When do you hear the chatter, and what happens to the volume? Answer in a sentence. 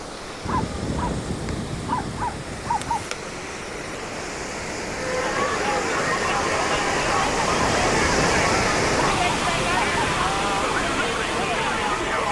You can hear the chatter from 5.0 to 12.2 s, at a steady volume.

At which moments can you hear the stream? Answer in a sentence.
The stream can be heard from 0.0 to 12.2 s.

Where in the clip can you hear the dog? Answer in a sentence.
You can hear the dog from 0.5 to 3.0 s and from 7.5 to 10.2 s.